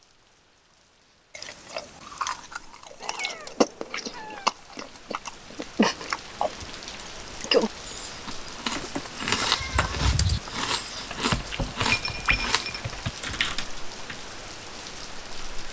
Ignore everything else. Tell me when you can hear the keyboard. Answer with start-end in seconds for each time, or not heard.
8.8-14.2.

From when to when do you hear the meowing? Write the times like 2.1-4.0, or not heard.
3.0-4.5, 9.4-10.4.